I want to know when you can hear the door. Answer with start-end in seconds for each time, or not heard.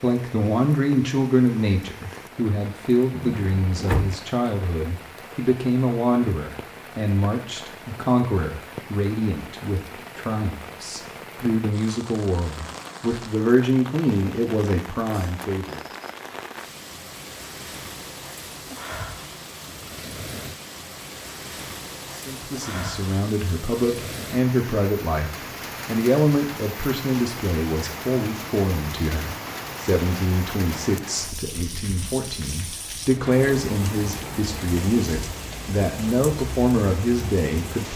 3.1-4.2.